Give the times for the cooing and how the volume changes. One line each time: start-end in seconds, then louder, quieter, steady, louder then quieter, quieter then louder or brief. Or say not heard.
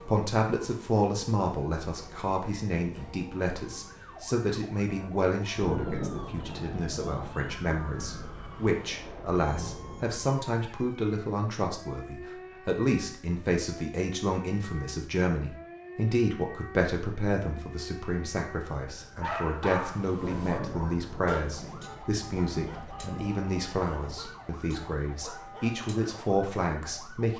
not heard.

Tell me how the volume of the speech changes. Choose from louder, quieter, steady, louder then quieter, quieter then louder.
steady.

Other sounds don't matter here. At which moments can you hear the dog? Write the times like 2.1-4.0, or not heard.
19.2-26.3.